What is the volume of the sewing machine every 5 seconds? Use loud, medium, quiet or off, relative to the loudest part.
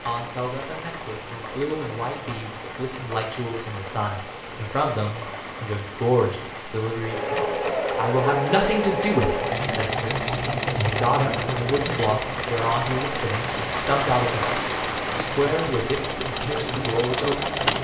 off, loud, loud, loud.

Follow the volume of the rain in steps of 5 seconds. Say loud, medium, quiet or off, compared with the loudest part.
medium, medium, loud, loud.